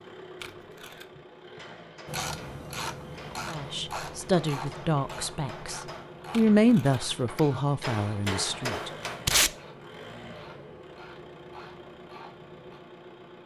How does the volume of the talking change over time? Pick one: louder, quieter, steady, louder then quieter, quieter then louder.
louder then quieter.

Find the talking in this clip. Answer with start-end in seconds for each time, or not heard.
3.5-8.9.